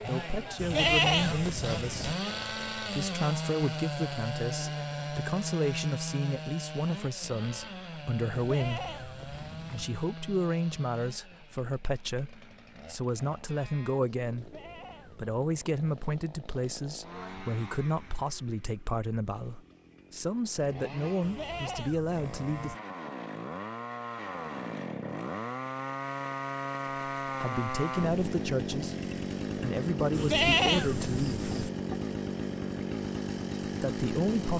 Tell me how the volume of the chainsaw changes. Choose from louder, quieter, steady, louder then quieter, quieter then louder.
quieter then louder.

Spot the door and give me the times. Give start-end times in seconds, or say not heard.
not heard.